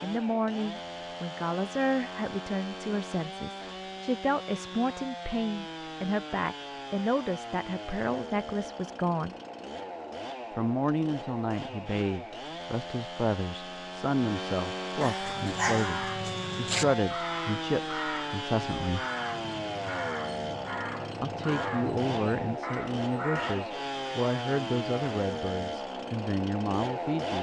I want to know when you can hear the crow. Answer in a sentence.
You can hear the crow from 15.2 to 23.8 s.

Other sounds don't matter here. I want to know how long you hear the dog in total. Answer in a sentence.
The dog can be heard for 2 seconds in total.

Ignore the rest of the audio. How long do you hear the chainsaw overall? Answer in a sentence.
You can hear the chainsaw for 27 seconds altogether.